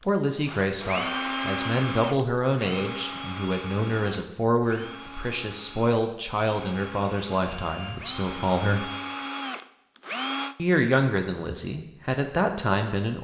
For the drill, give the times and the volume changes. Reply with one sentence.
You can hear the drill from 0.0 to 10.6 s, getting quieter then louder.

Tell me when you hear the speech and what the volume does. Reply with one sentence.
You can hear the speech from 0.1 to 8.9 s, at a steady volume; and briefly from 10.6 to 13.2 s.